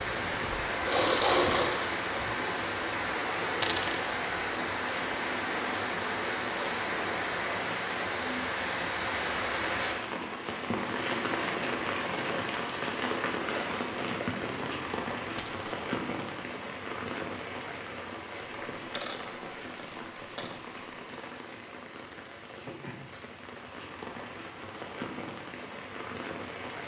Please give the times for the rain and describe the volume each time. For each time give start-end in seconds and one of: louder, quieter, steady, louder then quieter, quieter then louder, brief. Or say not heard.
0.0-26.8 quieter.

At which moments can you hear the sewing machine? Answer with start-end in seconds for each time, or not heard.
0.0-1.9.